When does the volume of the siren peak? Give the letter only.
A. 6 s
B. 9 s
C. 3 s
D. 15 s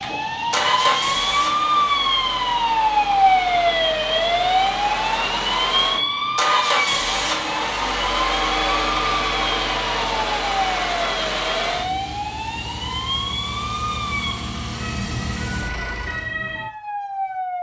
C.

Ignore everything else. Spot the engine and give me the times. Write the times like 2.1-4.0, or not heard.
0.0-16.4.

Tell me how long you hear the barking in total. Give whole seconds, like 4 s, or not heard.
not heard.